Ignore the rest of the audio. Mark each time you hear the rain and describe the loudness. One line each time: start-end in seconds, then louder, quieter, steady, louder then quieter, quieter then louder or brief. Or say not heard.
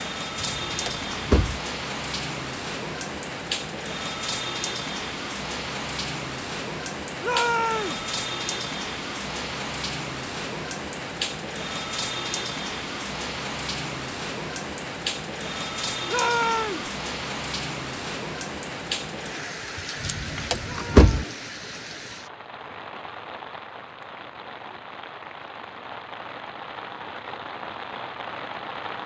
0.0-29.0 quieter.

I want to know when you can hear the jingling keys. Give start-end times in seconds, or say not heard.
0.3-1.6, 20.0-21.2.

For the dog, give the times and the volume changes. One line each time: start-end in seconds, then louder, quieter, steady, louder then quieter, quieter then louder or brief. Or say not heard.
not heard.